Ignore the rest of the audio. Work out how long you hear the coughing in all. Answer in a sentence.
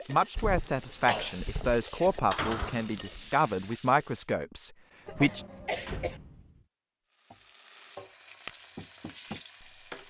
You can hear the coughing for 3 seconds altogether.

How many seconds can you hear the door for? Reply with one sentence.
You can hear the door for 3 seconds altogether.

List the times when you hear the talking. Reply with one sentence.
You can hear the talking from 0.0 to 5.5 s.